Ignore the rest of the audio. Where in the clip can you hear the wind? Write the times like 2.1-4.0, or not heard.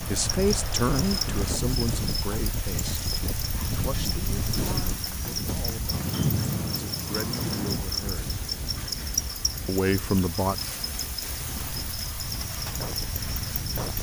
0.0-13.9.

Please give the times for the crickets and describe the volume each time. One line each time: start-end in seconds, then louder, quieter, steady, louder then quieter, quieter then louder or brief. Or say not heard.
0.0-13.9 steady.